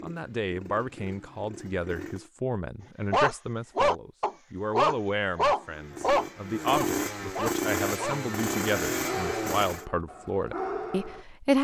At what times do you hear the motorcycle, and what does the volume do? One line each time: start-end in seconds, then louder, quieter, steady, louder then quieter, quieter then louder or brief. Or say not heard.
0.0-2.3 brief
5.6-9.8 louder.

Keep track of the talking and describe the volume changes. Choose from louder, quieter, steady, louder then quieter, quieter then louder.
steady.